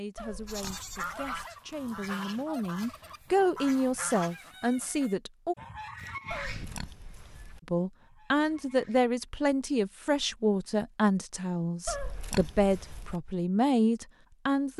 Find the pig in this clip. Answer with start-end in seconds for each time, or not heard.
0.1-1.4, 6.3-7.6, 11.8-13.2.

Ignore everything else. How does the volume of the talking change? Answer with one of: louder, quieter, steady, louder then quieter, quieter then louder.
louder.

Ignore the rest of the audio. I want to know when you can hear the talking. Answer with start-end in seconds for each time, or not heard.
0.0-5.5, 7.7-14.7.